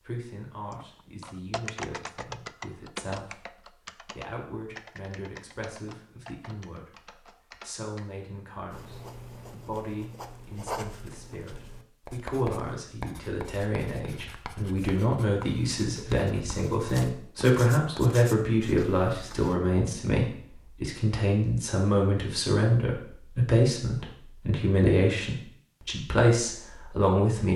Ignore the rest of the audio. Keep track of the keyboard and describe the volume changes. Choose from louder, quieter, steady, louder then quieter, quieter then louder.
quieter.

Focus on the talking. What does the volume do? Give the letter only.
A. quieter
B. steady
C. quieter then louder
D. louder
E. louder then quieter
D.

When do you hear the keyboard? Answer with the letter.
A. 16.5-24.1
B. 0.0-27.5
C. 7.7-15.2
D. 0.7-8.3
D.